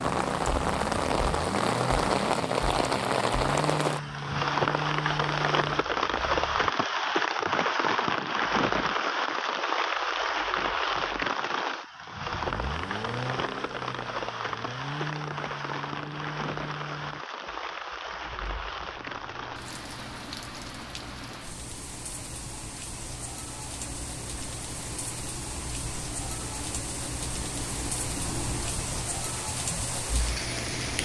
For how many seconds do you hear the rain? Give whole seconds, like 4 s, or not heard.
31 s.